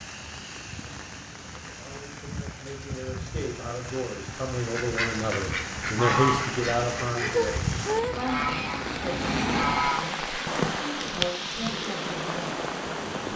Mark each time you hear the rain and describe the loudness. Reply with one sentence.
You can hear the rain from 0.0 to 13.3 s, getting louder.